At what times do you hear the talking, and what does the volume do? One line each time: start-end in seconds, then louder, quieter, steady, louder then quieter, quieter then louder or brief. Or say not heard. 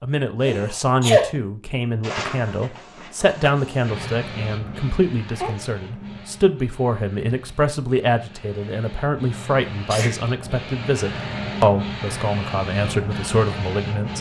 0.0-14.1 steady.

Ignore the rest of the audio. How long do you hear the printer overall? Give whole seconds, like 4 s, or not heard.
12 s.